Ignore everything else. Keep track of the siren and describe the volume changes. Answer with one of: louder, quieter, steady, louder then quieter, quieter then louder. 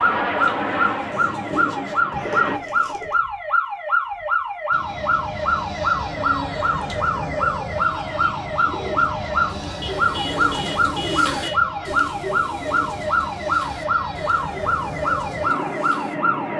steady.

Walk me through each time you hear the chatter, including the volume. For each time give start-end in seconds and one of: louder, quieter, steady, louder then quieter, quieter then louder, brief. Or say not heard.
not heard.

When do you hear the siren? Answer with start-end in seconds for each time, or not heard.
0.0-16.5.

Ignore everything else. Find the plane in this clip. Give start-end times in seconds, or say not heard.
0.0-2.6, 4.7-16.5.